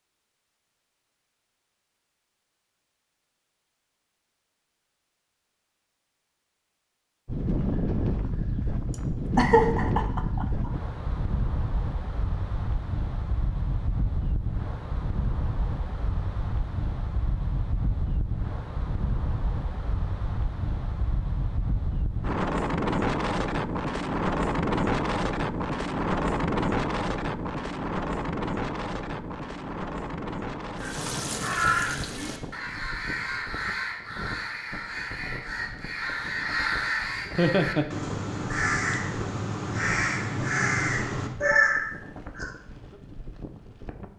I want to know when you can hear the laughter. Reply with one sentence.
The laughter can be heard from 9.3 to 10.7 s and from 37.4 to 37.9 s.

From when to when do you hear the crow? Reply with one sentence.
You can hear the crow from 30.8 to 42.5 s.